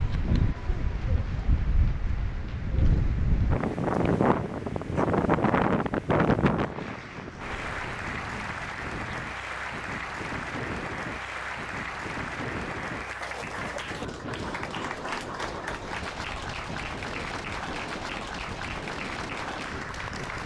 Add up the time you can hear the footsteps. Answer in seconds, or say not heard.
not heard.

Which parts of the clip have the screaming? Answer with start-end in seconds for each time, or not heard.
not heard.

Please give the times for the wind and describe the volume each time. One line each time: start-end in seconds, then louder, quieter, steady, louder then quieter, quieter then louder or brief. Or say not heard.
0.0-20.4 quieter.